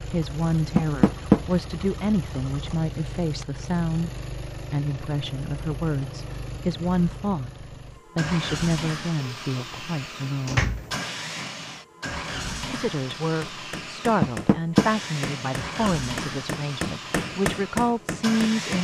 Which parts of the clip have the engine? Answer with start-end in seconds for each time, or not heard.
0.0-18.7.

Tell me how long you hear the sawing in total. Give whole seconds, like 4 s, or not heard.
not heard.